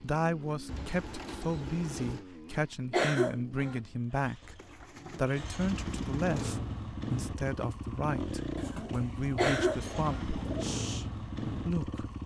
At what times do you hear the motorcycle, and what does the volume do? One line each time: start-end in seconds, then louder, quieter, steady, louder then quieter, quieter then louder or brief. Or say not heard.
0.0-12.2 quieter then louder.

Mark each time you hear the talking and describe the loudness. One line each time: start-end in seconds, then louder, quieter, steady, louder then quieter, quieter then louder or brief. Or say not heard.
0.0-12.1 steady.